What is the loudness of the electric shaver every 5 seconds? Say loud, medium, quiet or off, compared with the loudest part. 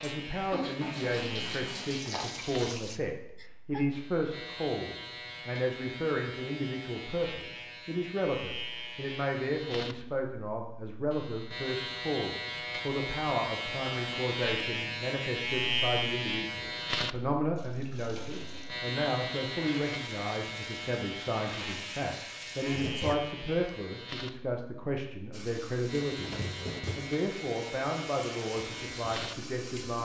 medium, medium, loud, loud, medium, medium.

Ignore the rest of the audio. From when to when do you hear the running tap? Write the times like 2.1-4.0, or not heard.
0.0-3.0, 17.6-23.1, 25.3-30.0.